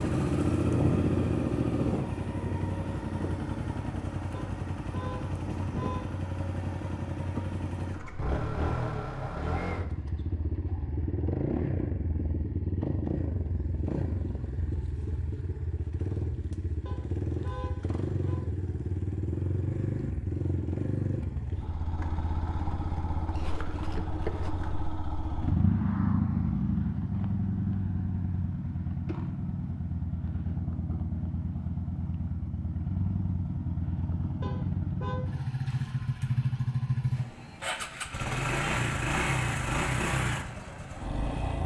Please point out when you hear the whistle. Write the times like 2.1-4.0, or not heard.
not heard.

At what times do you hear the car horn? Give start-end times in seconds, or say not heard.
4.3-6.1, 16.9-18.4, 34.4-35.2.